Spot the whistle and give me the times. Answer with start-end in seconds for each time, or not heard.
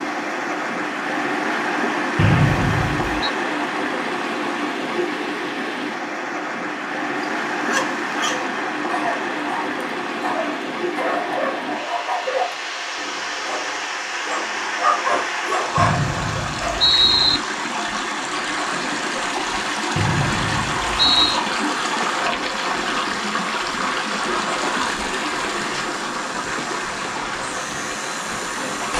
2.1-3.3, 15.8-17.4, 19.9-21.4.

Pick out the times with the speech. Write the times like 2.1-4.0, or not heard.
not heard.